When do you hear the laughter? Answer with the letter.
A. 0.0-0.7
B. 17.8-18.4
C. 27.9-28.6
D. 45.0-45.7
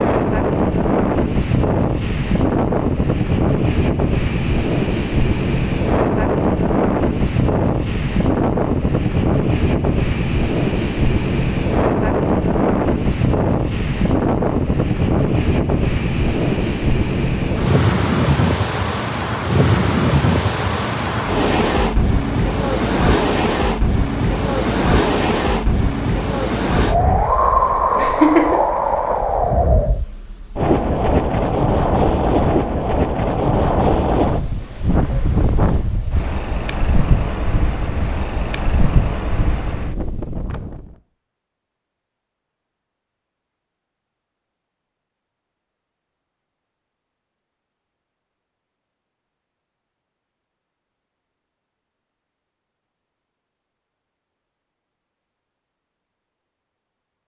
C.